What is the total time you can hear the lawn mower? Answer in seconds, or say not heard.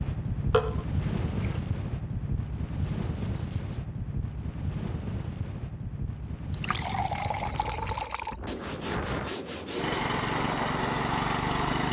2 s.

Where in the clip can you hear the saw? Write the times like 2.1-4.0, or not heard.
2.5-3.9, 8.4-10.2.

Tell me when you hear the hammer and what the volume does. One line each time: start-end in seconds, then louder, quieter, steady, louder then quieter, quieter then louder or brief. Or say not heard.
not heard.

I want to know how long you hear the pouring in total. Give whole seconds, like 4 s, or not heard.
3 s.